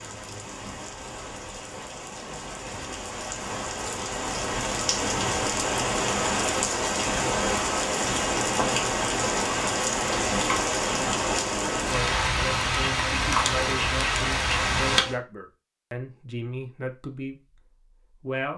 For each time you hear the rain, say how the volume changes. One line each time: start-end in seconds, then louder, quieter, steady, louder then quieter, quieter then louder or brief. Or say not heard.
0.0-15.2 louder.